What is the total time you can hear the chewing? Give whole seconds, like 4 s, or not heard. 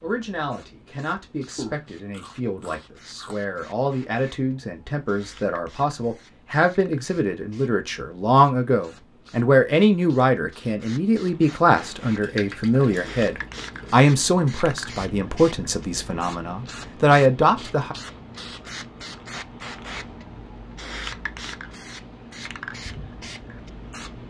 2 s.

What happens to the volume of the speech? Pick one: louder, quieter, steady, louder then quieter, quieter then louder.
louder.